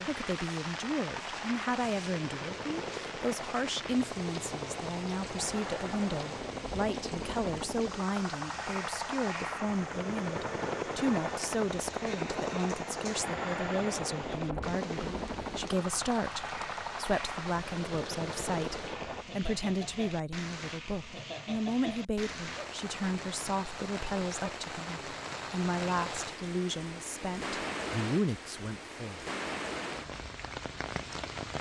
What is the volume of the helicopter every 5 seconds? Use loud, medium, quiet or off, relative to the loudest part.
medium, loud, loud, loud, off, off, off.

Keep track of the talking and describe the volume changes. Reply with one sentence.
The volume of the talking stays about the same.